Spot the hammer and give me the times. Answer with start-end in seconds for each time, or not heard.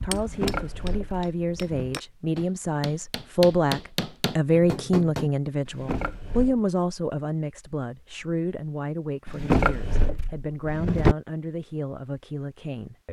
0.0-5.3.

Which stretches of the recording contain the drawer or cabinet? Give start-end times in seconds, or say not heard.
0.1-1.9, 5.7-6.6, 9.2-11.2.